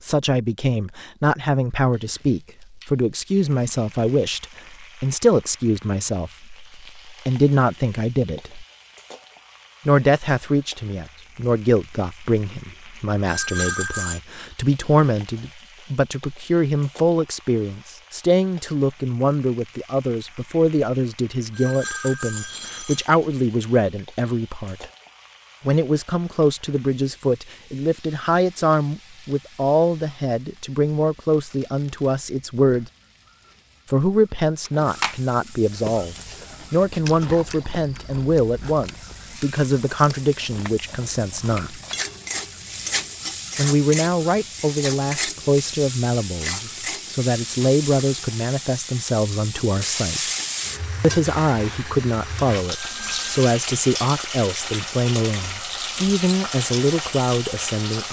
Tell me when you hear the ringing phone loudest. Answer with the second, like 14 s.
14 s.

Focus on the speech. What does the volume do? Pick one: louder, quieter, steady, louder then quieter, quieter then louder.
steady.